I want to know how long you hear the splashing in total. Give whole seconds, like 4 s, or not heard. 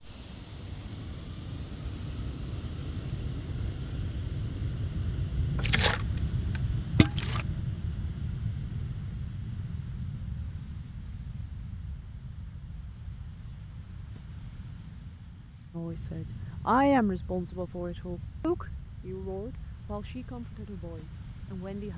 2 s.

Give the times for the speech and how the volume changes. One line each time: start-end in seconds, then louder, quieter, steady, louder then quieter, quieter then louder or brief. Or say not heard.
15.8-21.9 quieter.